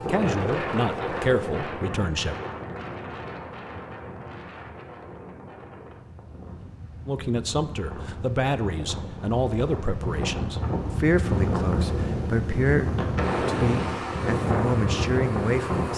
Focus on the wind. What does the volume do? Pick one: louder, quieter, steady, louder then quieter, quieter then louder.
quieter then louder.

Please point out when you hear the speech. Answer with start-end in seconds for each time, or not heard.
0.1-2.4, 7.0-15.9.